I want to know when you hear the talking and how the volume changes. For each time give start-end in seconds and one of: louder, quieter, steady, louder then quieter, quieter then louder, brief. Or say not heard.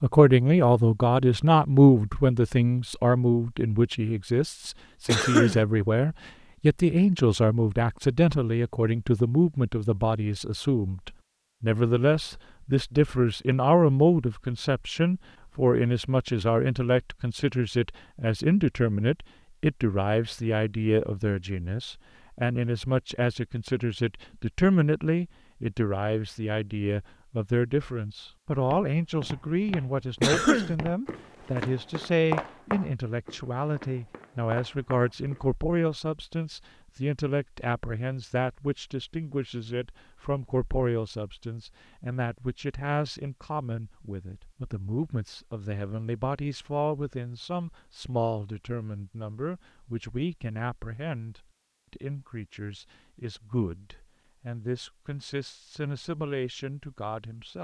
0.0-57.6 quieter.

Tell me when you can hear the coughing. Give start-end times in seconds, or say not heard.
5.0-5.7, 30.2-30.8.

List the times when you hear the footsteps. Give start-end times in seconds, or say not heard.
28.6-35.5.